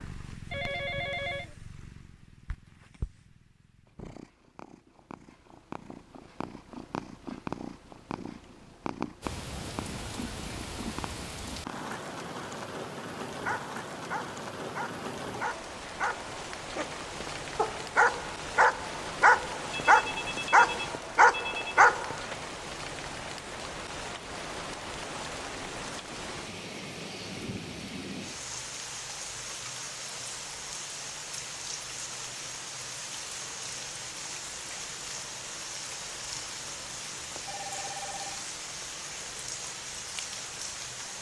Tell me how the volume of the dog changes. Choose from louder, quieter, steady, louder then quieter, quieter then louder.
louder.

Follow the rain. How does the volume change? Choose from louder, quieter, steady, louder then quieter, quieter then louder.
steady.